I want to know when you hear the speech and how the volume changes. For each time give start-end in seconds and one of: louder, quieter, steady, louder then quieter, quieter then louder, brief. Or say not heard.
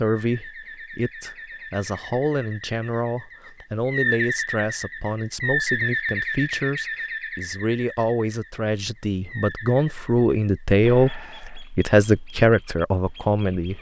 0.0-13.7 louder.